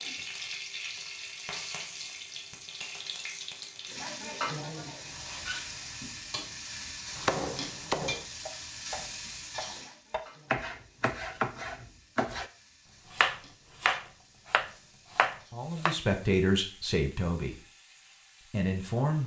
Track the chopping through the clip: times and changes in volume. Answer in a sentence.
You can hear the chopping from 7.2 to 12.4 s, getting quieter then louder; and briefly from 13.1 to 15.9 s.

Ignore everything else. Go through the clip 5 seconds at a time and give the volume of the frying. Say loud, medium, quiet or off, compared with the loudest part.
loud, loud, quiet, quiet.